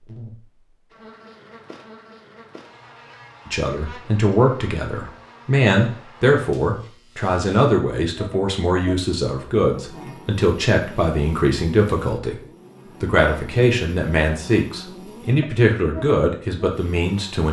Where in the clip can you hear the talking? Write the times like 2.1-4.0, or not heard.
3.5-12.4, 13.0-17.4.